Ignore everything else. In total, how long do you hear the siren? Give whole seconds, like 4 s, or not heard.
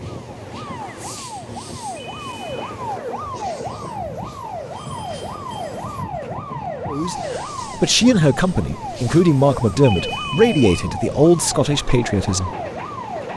13 s.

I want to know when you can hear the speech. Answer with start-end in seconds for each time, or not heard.
6.8-12.5.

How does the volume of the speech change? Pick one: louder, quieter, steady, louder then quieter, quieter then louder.
steady.